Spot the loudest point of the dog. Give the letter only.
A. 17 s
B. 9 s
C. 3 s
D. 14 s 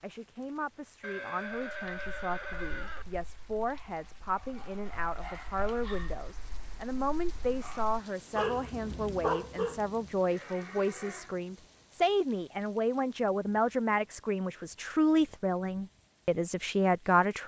B.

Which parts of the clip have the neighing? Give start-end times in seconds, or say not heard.
1.0-3.0, 10.3-11.3.